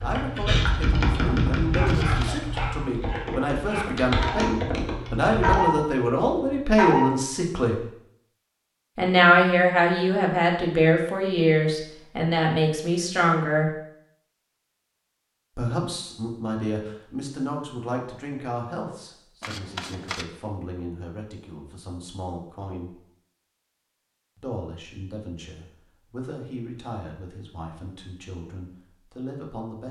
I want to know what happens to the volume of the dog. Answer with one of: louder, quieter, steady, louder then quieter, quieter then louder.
louder.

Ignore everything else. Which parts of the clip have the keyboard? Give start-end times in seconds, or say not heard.
0.0-5.6.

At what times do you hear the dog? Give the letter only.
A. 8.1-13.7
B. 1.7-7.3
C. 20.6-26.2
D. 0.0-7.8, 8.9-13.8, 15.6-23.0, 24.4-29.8
B.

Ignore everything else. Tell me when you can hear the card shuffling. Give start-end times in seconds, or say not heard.
1.9-2.5, 19.4-20.2.